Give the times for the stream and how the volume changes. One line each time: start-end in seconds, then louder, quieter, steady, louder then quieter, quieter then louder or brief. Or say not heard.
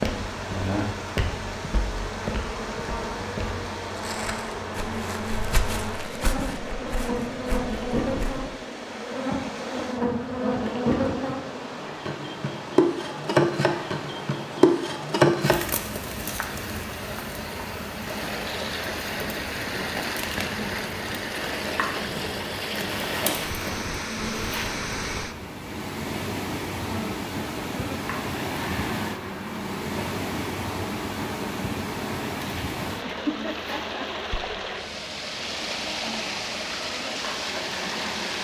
0.0-38.3 louder.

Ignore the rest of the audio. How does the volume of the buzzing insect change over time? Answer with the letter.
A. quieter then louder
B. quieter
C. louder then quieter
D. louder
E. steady
C.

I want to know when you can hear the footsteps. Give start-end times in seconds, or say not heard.
0.0-8.4.